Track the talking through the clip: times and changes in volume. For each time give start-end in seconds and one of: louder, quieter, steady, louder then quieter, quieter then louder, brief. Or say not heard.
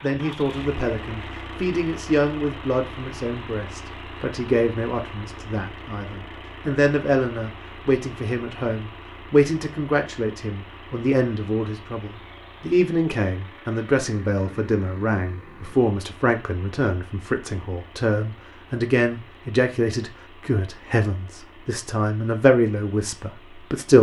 0.0-23.9 steady.